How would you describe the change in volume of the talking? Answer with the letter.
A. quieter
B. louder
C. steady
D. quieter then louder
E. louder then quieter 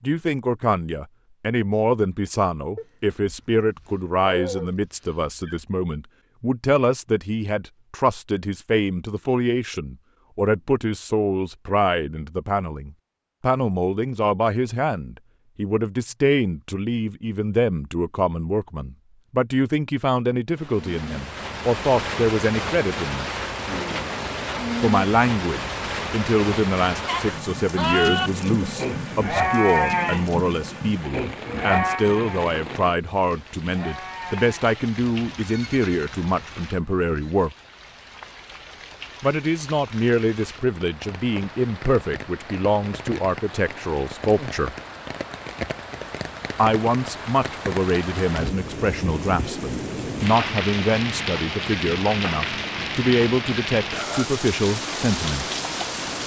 C.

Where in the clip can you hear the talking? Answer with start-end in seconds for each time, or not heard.
0.0-23.3, 24.8-37.5, 39.2-44.8, 46.5-55.5.